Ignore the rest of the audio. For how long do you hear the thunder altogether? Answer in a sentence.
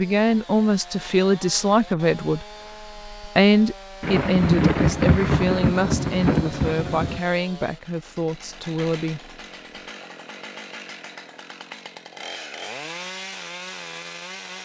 The thunder can be heard for 3 seconds in total.